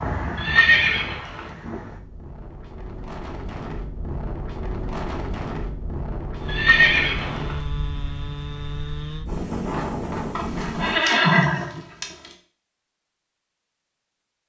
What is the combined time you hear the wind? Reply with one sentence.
The wind can be heard for 11 seconds in total.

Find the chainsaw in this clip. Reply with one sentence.
You can hear the chainsaw from 6.3 to 9.2 s.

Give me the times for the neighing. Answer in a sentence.
The neighing can be heard from 0.3 to 1.5 s, from 6.5 to 7.6 s and from 10.3 to 12.1 s.